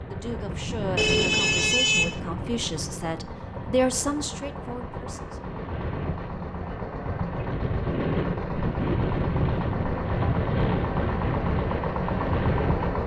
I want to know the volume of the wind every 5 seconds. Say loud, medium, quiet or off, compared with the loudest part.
medium, loud, loud.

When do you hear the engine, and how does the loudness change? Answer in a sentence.
You can hear the engine from 0.1 to 13.0 s, getting louder.